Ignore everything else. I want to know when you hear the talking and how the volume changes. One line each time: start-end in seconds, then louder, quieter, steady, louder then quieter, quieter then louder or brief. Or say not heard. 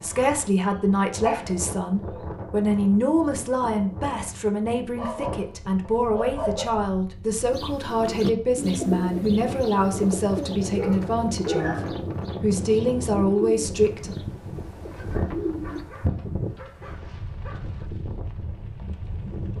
0.0-14.2 steady.